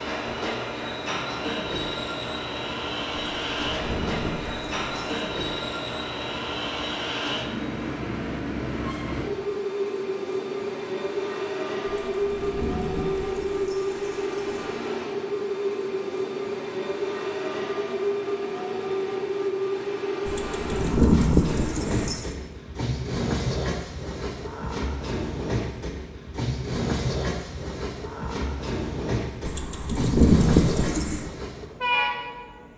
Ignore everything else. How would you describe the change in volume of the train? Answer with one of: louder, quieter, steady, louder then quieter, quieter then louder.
steady.